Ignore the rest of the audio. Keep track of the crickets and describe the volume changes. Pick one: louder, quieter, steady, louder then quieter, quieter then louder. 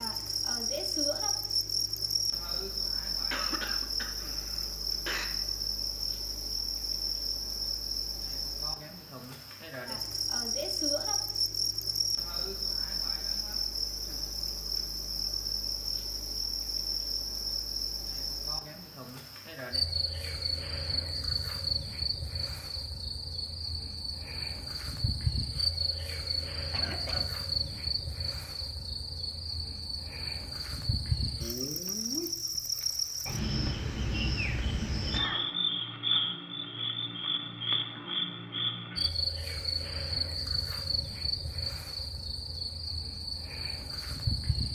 steady.